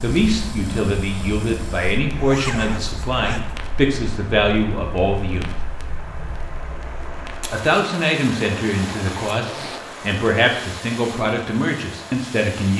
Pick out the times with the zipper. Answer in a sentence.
The zipper can be heard from 2.1 to 3.6 s and from 9.4 to 9.9 s.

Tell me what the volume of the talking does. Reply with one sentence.
The volume of the talking stays about the same.